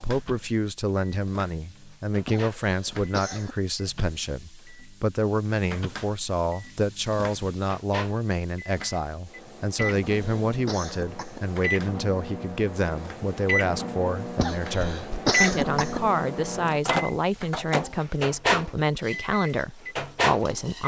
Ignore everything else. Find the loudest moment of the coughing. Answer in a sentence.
The volume of the coughing peaks at 15 seconds.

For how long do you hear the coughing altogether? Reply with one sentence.
The coughing can be heard for 5 seconds in total.